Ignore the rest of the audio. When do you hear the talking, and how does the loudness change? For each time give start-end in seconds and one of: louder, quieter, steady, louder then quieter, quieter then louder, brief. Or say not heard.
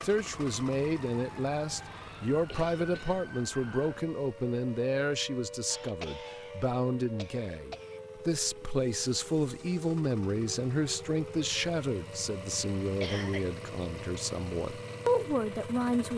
0.0-16.1 steady.